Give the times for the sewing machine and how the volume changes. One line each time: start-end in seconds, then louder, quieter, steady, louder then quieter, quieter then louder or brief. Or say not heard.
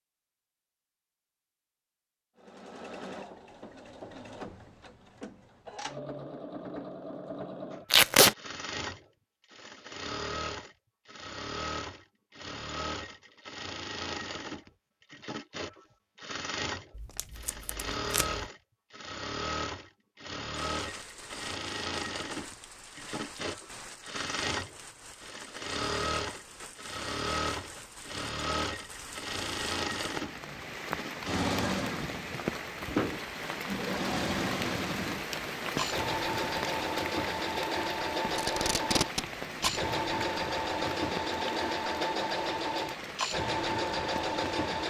2.4-44.8 louder.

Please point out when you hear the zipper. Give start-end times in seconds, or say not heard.
not heard.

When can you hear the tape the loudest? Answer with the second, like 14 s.
8 s.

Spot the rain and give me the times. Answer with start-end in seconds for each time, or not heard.
20.7-44.8.